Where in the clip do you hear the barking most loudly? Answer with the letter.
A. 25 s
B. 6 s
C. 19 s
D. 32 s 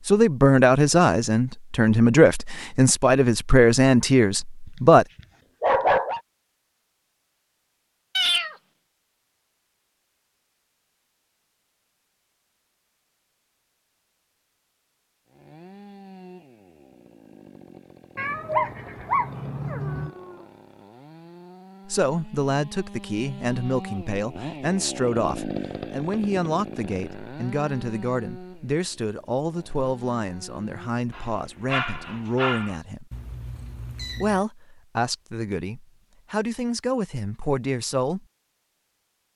B.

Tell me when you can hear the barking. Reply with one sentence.
The barking can be heard from 4.7 to 6.2 s, from 18.5 to 20.4 s and from 31.1 to 32.8 s.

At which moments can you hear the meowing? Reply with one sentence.
You can hear the meowing from 8.2 to 8.6 s, from 18.1 to 20.1 s and from 33.1 to 34.5 s.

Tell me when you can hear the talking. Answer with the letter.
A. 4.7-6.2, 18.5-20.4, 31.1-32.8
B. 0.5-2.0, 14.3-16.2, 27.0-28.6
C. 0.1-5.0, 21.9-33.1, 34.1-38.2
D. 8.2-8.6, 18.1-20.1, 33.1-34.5
C.